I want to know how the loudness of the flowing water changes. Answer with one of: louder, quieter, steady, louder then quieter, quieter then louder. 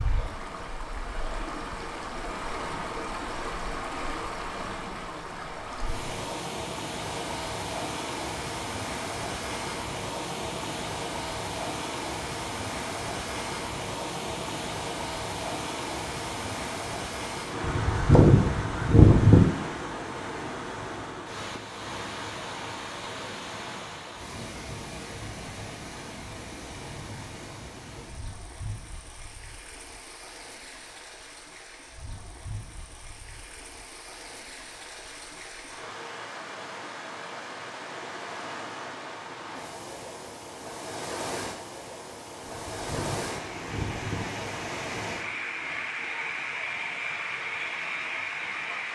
quieter then louder.